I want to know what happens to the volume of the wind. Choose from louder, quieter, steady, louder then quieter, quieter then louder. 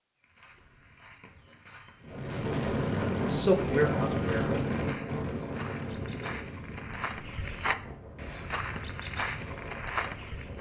quieter.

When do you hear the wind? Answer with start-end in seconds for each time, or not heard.
2.0-10.5.